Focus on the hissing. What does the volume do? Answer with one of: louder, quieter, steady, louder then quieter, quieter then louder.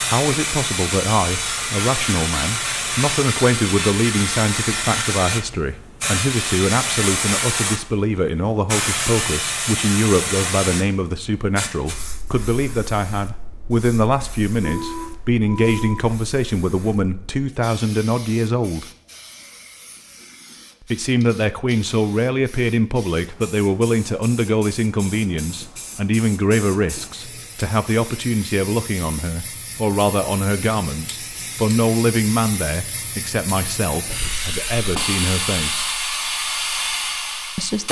quieter then louder.